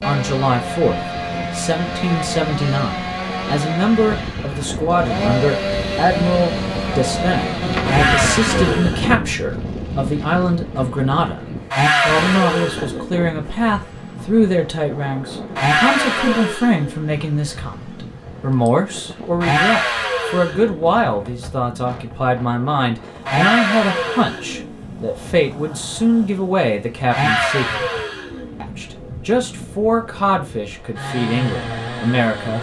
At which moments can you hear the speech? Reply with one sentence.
The speech can be heard from 0.0 to 27.8 s and from 28.6 to 32.5 s.